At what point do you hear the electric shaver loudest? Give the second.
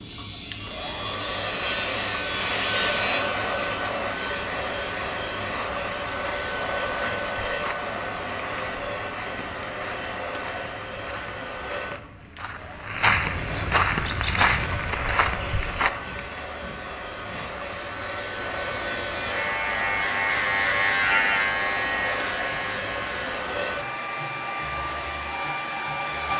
21 s.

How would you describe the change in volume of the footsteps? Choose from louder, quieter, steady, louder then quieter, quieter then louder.
louder.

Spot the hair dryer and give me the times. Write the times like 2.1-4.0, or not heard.
0.0-26.3.